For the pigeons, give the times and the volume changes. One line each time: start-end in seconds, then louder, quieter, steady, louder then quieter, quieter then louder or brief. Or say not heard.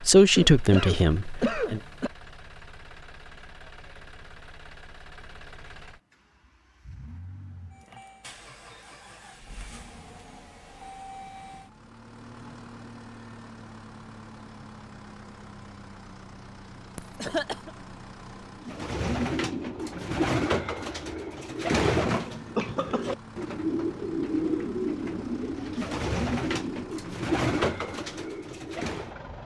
18.6-29.1 steady.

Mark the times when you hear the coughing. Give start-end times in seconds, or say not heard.
0.3-2.1, 16.9-17.7, 22.6-23.1.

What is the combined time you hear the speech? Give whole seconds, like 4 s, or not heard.
2 s.